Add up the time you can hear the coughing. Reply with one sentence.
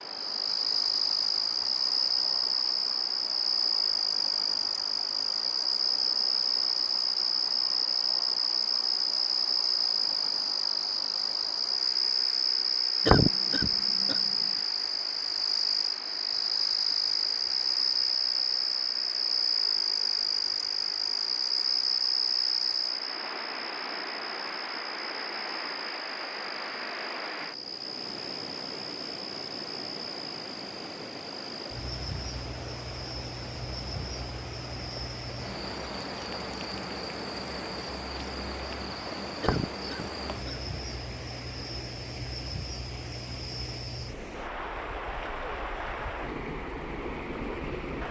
The coughing can be heard for 2 seconds in total.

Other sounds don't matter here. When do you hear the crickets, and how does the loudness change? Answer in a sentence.
The crickets can be heard from 0.0 to 48.0 s, getting quieter.